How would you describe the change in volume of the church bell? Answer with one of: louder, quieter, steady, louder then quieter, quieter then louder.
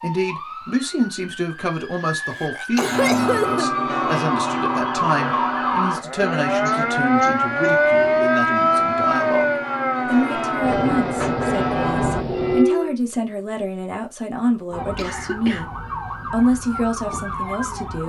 quieter then louder.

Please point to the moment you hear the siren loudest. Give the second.
8 s.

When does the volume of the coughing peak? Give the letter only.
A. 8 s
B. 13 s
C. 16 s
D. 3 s
D.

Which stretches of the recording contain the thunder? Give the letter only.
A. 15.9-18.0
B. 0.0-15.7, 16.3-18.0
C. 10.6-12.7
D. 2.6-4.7
C.